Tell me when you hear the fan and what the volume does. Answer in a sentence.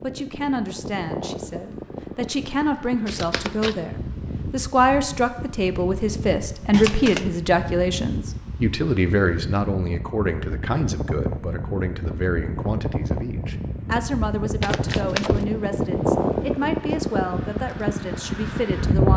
You can hear the fan from 0.0 to 19.1 s, getting louder.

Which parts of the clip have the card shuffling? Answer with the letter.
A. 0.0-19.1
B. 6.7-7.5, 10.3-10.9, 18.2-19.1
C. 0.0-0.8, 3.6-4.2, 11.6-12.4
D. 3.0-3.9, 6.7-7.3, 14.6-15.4
D.